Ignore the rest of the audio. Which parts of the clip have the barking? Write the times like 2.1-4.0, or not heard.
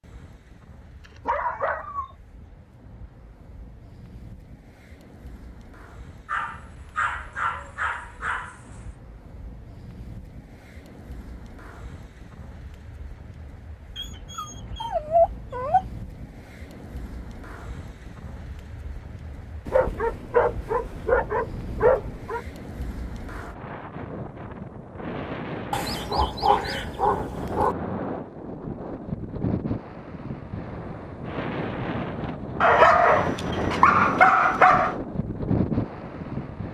1.0-2.1, 6.2-8.9, 13.9-15.8, 19.6-22.4, 25.7-27.8, 32.6-35.0.